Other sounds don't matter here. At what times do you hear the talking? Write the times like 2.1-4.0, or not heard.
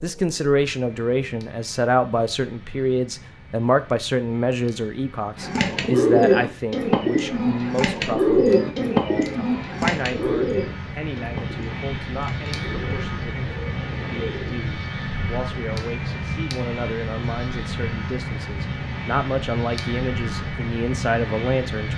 0.0-21.9.